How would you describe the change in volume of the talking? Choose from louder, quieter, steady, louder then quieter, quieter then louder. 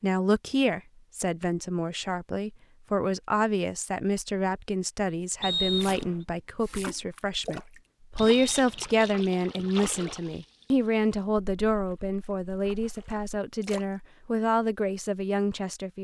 steady.